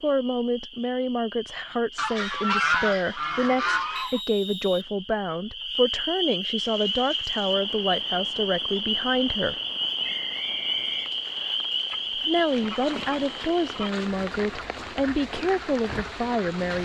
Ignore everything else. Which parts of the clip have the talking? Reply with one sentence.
The talking can be heard from 0.0 to 9.6 s and from 12.2 to 16.7 s.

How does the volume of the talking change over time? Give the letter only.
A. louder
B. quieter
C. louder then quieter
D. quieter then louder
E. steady
E.